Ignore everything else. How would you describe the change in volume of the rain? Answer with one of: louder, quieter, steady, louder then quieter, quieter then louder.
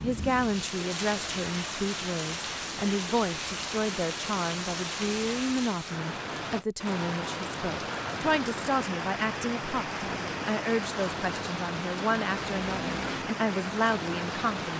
steady.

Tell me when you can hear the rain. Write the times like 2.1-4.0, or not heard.
0.0-14.7.